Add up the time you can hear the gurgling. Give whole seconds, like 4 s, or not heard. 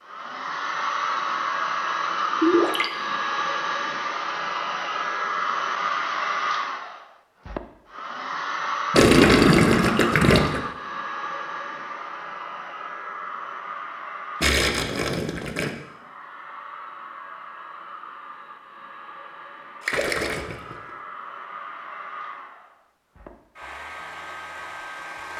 4 s.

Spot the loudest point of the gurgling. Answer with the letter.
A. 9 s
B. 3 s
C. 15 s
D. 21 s
A.